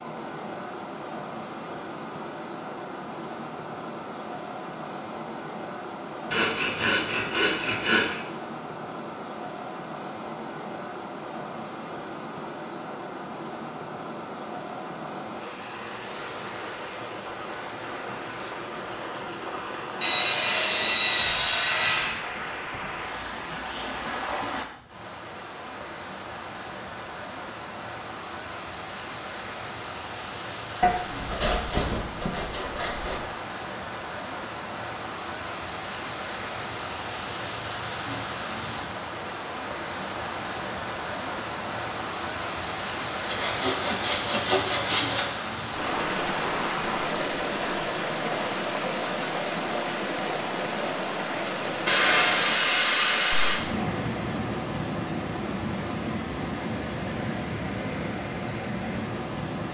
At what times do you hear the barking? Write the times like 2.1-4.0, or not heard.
not heard.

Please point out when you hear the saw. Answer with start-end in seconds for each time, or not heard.
6.3-8.2, 20.0-22.1, 30.8-33.2, 43.3-45.2, 51.9-53.6.